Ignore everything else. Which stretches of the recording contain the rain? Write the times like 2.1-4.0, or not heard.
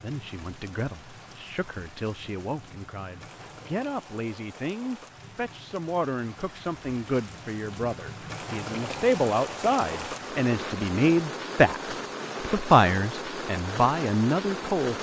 0.0-14.9.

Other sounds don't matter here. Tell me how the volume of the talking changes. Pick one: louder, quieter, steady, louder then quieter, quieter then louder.
louder.